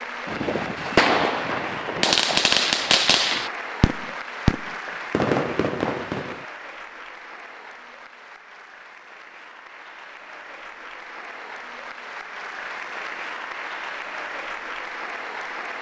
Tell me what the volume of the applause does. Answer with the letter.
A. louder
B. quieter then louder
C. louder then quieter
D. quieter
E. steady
B.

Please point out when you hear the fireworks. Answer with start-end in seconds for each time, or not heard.
0.2-6.5.